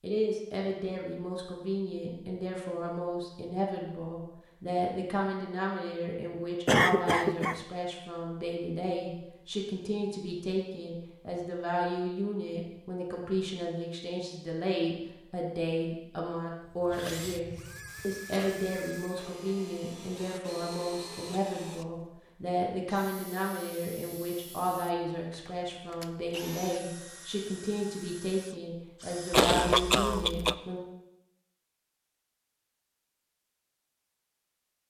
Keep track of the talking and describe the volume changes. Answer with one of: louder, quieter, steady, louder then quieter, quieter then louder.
steady.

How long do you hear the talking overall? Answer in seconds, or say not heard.
31 s.